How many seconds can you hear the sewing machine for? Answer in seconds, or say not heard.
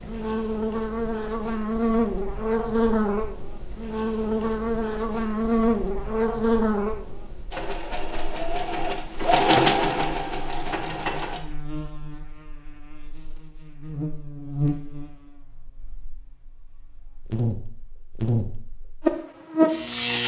4 s.